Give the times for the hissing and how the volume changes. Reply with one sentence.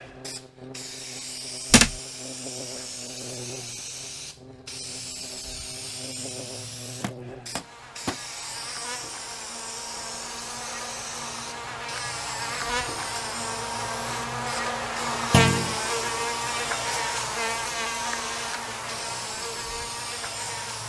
You can hear the hissing from 0.0 to 20.8 s, at a steady volume.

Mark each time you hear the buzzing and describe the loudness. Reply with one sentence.
The buzzing can be heard from 0.0 to 20.8 s, getting louder.